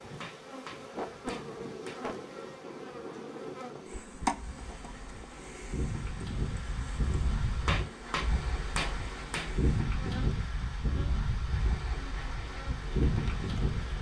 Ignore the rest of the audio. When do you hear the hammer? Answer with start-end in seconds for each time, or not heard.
0.2-2.0, 7.7-9.6.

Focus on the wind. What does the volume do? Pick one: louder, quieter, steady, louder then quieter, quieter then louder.
louder.